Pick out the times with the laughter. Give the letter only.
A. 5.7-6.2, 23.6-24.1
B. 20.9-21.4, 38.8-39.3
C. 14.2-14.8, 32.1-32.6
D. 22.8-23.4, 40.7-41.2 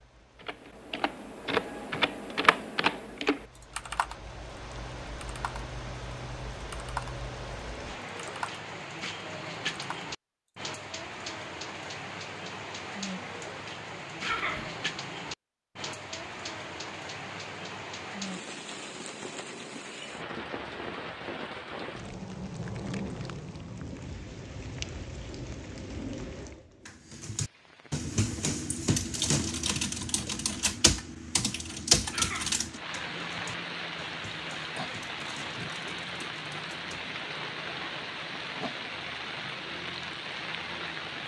C.